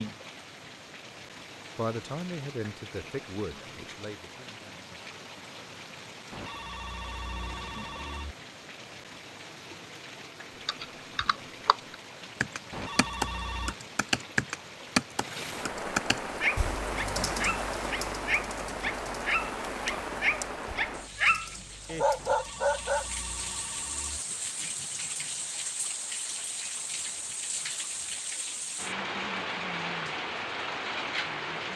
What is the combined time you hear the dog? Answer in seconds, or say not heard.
7 s.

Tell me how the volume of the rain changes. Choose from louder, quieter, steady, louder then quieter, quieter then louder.
louder.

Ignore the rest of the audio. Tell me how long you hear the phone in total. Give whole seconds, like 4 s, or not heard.
5 s.